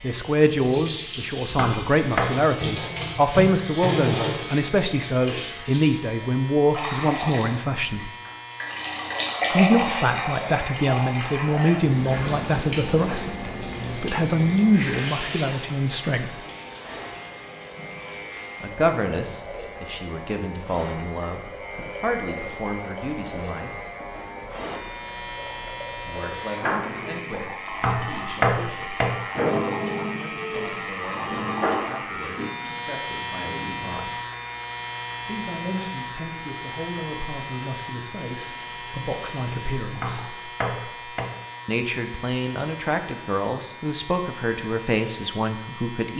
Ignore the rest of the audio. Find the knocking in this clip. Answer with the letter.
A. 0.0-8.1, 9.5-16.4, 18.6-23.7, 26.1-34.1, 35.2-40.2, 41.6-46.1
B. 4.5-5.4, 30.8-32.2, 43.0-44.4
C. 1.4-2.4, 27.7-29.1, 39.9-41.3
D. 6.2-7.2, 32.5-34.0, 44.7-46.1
C.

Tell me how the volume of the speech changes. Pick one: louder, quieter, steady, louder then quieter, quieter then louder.
quieter then louder.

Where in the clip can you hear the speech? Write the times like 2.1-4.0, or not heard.
0.0-8.1, 9.5-16.4, 18.6-23.7, 26.1-34.1, 35.2-40.2, 41.6-46.1.